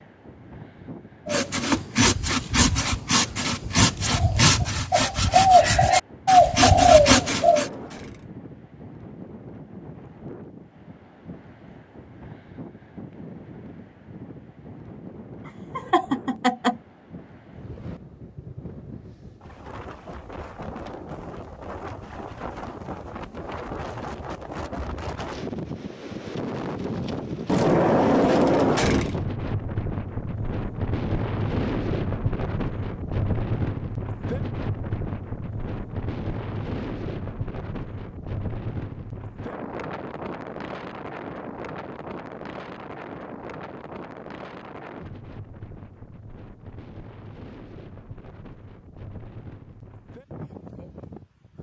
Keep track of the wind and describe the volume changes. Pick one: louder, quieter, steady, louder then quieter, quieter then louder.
louder then quieter.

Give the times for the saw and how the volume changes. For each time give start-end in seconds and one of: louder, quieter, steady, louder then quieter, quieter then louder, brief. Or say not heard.
1.2-7.7 louder.